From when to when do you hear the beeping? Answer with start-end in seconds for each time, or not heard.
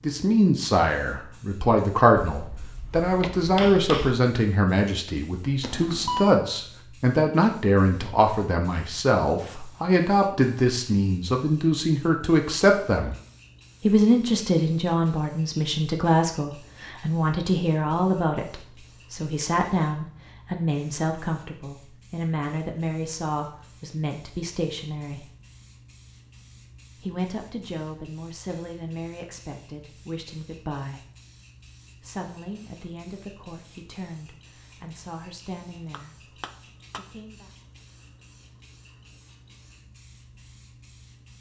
5.6-6.3.